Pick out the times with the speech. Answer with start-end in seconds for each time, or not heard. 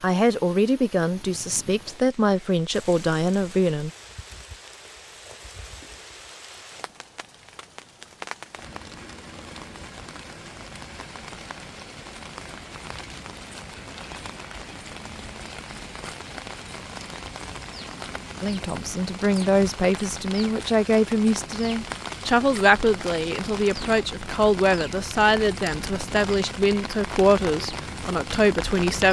0.0-3.9, 18.4-29.0.